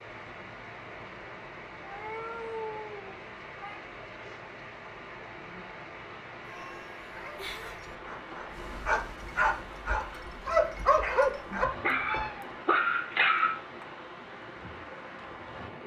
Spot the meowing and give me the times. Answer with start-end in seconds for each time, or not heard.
1.8-3.8, 6.5-7.9, 11.4-12.6.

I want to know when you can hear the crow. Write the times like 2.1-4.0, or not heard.
not heard.